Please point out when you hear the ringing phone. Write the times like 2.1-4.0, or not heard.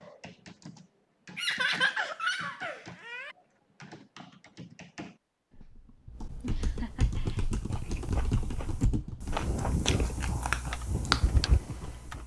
not heard.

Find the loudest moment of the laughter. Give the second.
2 s.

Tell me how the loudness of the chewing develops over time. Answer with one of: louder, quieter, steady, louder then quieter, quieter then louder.
louder.